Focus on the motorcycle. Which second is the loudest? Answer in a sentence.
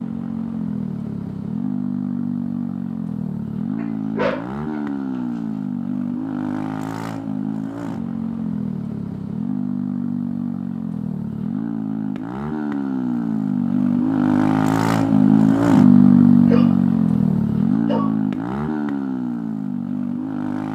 The volume of the motorcycle peaks at 16 seconds.